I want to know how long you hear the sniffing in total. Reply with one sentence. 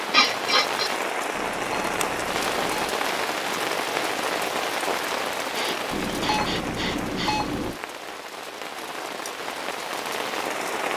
The sniffing can be heard for 3 seconds in total.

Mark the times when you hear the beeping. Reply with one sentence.
The beeping can be heard from 1.3 to 3.0 s and from 5.9 to 7.8 s.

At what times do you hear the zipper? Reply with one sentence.
You can't hear the zipper here.